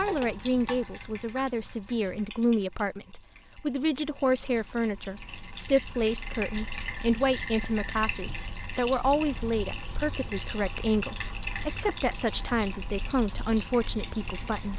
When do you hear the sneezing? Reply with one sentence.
You can't hear the sneezing here.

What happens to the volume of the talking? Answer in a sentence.
The volume of the talking stays about the same.